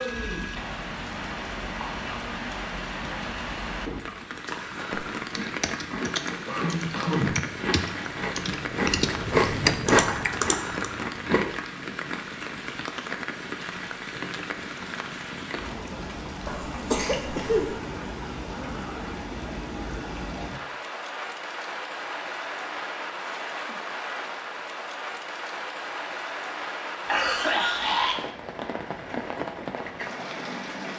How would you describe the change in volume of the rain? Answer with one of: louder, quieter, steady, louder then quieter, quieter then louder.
steady.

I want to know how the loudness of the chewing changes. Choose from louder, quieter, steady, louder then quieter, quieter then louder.
louder.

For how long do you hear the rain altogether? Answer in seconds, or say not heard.
31 s.